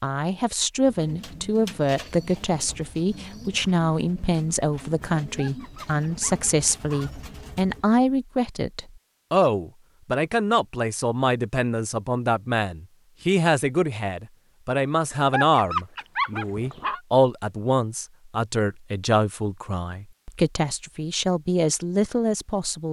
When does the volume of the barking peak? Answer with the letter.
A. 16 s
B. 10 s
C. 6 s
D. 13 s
A.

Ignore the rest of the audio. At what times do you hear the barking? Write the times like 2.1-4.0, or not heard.
5.3-7.1, 15.1-17.0.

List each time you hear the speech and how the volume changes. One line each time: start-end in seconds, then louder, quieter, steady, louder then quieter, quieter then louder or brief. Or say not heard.
0.0-22.8 steady.